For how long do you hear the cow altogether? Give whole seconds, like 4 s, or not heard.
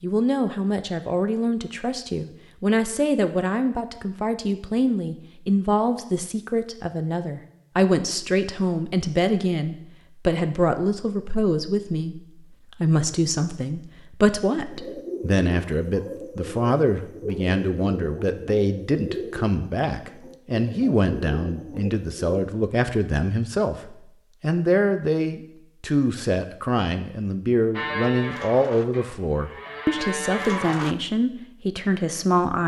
3 s.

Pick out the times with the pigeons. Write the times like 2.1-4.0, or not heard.
14.7-22.2.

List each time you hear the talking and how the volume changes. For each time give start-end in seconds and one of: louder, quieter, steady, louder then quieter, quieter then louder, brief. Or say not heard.
0.0-32.6 steady.